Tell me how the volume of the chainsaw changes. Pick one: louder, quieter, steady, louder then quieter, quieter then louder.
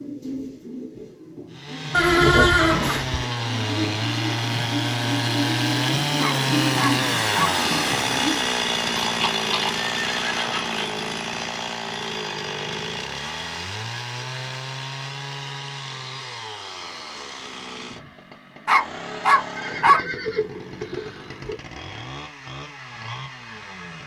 quieter.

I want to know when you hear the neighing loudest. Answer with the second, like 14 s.
2 s.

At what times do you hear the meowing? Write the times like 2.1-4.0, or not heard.
not heard.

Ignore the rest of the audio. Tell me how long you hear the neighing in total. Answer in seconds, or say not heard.
5 s.